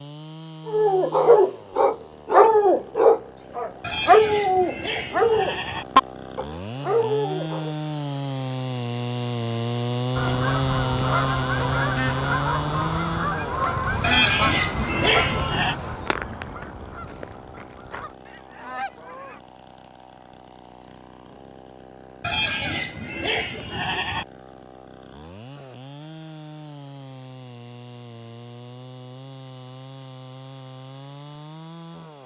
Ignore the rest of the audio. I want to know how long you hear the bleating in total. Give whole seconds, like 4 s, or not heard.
6 s.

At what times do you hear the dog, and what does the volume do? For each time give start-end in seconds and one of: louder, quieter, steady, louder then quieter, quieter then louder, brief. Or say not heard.
0.7-7.8 quieter.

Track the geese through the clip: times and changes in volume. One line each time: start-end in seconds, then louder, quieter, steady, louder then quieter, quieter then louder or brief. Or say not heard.
10.2-19.4 quieter.